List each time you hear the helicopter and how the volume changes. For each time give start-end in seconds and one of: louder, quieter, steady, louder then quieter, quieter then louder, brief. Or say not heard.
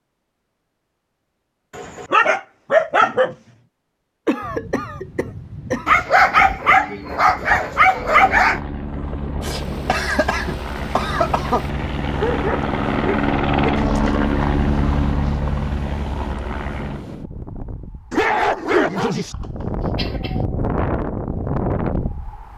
7.9-17.1 louder then quieter.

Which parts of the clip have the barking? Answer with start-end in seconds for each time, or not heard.
1.8-3.4, 5.8-8.6, 12.1-13.8, 18.1-19.4.